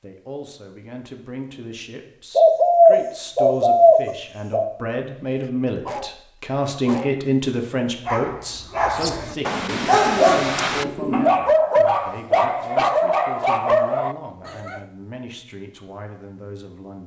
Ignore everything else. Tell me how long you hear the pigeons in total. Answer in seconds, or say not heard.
5 s.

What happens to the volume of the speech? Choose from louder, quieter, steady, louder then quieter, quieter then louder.
louder then quieter.